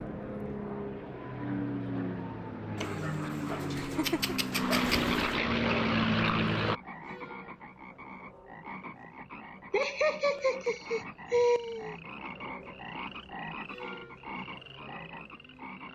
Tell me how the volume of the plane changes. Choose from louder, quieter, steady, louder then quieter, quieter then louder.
louder.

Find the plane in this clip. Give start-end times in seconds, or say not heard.
0.0-6.8.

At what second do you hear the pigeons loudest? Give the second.
5 s.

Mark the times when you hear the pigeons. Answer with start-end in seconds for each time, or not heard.
2.8-5.3.